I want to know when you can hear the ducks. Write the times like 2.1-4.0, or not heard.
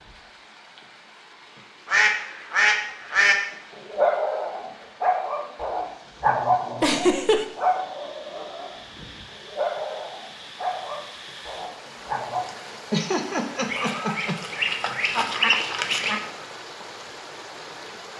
1.9-3.4, 13.7-16.2.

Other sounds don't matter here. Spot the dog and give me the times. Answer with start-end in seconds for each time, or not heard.
3.8-12.5.